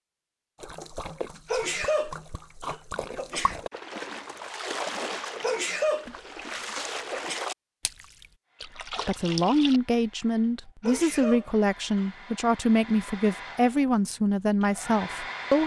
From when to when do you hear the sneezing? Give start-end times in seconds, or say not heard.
1.4-3.6, 5.4-7.5, 10.8-12.1.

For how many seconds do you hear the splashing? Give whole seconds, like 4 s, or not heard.
9 s.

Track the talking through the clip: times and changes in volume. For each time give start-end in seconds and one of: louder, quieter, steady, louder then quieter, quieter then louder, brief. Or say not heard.
8.8-15.6 steady.